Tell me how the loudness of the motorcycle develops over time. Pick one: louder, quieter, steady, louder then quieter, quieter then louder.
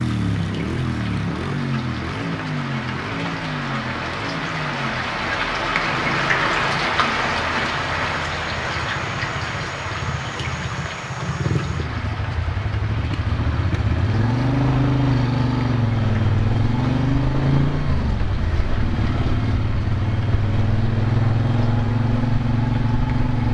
quieter then louder.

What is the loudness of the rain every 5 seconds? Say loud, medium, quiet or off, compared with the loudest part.
medium, loud, medium, quiet, quiet.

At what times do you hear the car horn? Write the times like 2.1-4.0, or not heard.
not heard.